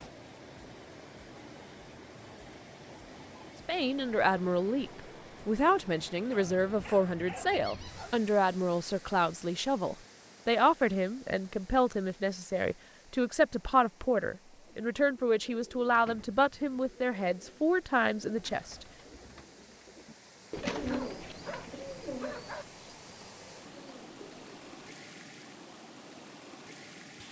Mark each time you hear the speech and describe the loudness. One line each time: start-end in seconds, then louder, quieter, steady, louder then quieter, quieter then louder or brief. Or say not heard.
3.6-18.9 steady.